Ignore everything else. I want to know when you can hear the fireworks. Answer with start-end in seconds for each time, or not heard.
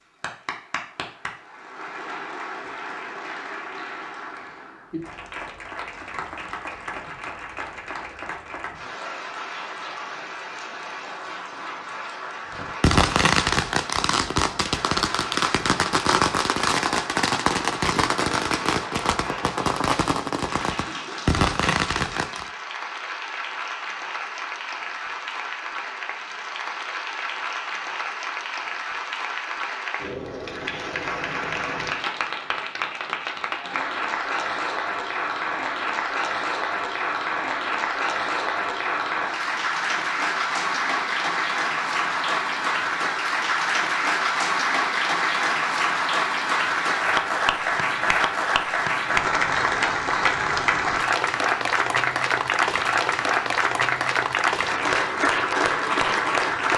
12.6-22.5.